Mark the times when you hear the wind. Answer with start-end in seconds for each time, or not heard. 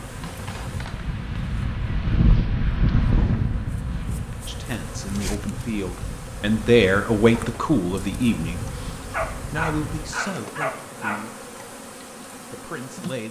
0.0-10.2.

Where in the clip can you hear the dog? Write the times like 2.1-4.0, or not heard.
9.1-11.4.